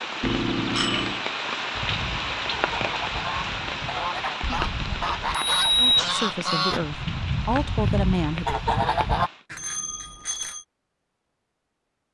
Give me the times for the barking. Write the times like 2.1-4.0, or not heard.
not heard.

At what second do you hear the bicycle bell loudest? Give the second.
6 s.